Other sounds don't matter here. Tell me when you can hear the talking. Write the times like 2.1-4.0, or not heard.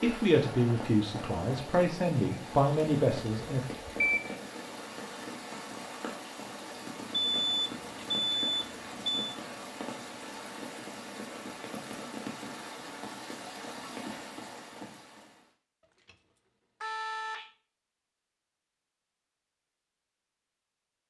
0.0-3.6.